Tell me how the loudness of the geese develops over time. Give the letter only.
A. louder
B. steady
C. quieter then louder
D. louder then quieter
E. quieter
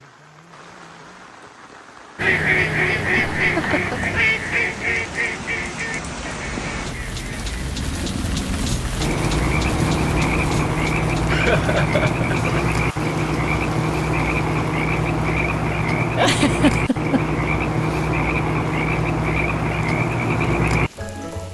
E.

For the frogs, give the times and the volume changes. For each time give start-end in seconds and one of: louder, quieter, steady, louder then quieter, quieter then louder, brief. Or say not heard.
9.0-21.5 steady.